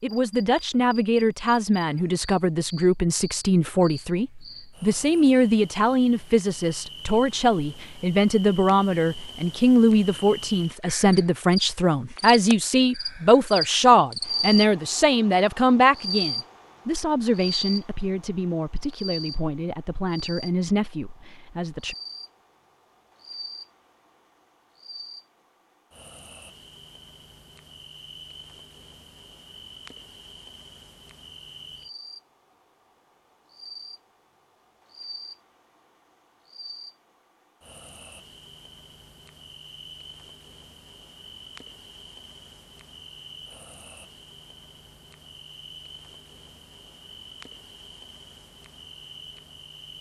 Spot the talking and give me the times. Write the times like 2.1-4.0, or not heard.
0.0-21.9.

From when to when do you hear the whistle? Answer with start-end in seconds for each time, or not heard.
not heard.